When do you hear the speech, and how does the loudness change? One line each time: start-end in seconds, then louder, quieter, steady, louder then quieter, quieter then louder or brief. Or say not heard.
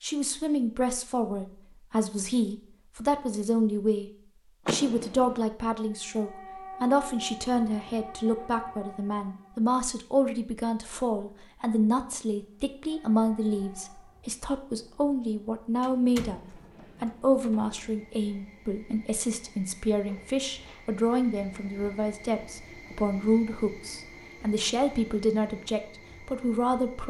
0.0-27.0 steady.